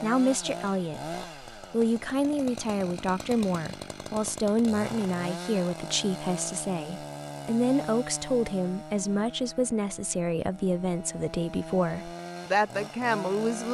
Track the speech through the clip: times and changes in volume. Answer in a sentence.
You can hear the speech from 0.0 to 13.6 s, at a steady volume.